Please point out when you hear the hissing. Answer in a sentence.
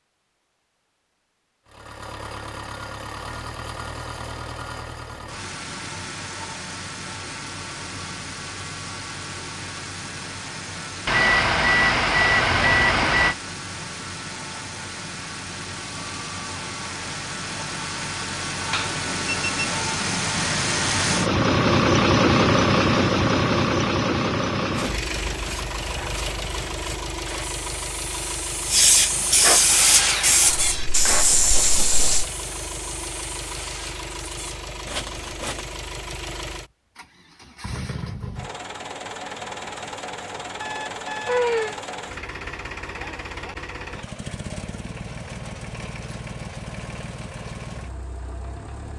The hissing can be heard from 28.6 to 32.2 s.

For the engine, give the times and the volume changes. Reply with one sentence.
The engine can be heard from 1.6 to 48.9 s, getting louder then quieter.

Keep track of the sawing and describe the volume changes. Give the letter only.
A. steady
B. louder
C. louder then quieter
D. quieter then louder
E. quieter
C.